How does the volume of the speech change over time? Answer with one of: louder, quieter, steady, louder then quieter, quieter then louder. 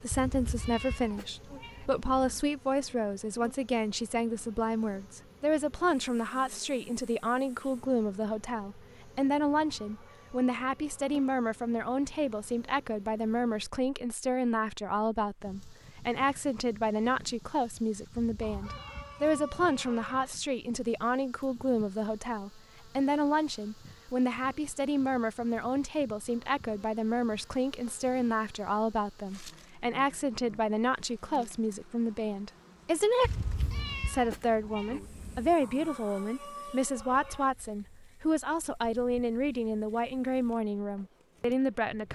steady.